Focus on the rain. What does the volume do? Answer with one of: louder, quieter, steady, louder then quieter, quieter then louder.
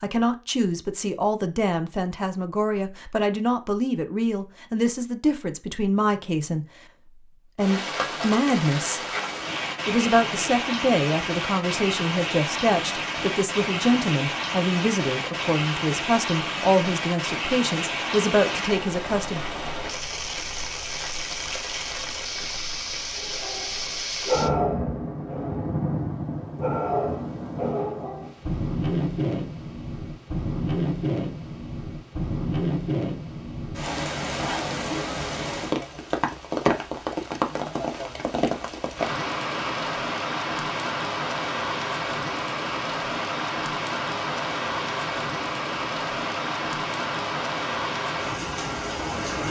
steady.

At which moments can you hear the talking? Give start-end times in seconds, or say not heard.
0.0-9.1, 9.8-19.4.